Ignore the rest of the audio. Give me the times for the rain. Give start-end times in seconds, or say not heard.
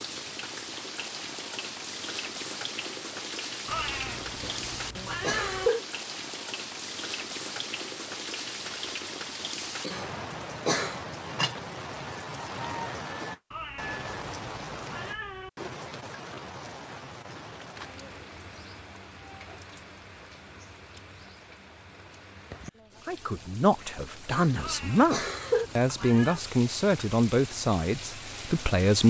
0.0-29.0.